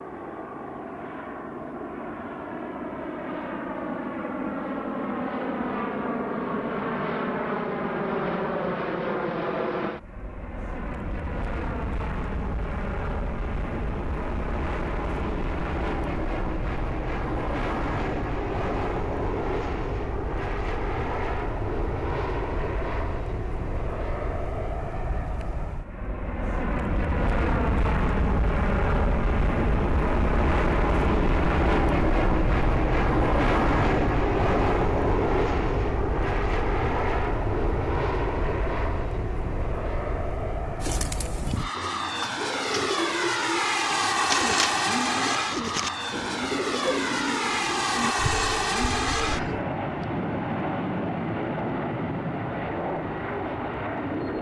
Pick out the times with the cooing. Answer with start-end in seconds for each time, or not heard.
40.8-49.6.